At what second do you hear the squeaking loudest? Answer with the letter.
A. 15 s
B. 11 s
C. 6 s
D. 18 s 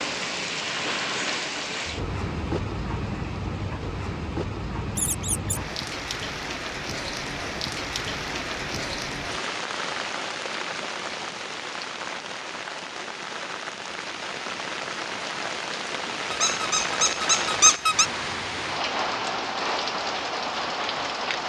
D.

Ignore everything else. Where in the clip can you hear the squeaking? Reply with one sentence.
The squeaking can be heard from 5.0 to 5.6 s and from 16.3 to 18.1 s.